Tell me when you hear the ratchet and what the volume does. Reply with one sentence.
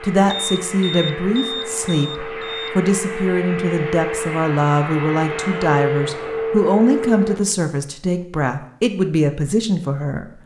The ratchet can't be heard in this clip.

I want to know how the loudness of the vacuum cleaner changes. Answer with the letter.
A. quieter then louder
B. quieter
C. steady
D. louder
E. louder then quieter
D.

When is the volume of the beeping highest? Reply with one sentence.
The volume of the beeping peaks at 1 second.